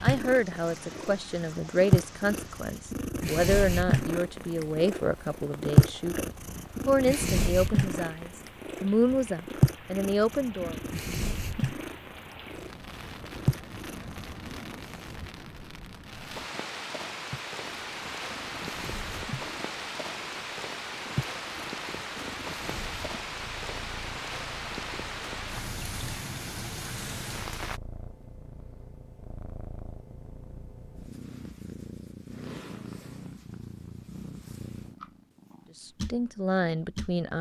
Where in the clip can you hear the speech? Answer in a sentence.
The speech can be heard from 0.0 to 10.8 s and from 35.8 to 37.3 s.